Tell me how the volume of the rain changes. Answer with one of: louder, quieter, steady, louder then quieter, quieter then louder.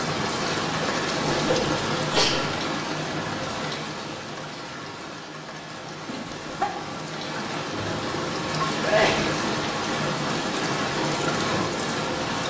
quieter then louder.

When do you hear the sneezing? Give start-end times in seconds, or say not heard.
1.2-2.4, 6.0-6.7, 8.8-9.4.